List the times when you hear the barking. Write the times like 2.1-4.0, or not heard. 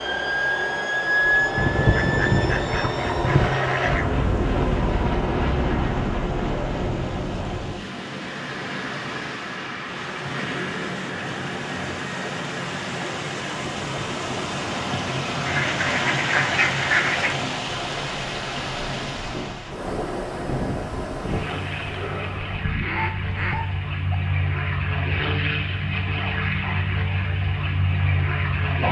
22.9-24.1.